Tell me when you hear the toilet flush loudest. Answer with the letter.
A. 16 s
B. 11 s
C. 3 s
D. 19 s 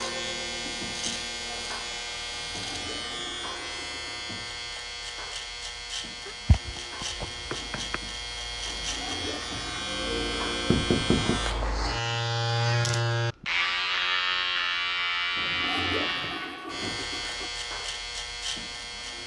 A.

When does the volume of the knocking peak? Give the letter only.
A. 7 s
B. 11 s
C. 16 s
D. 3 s
B.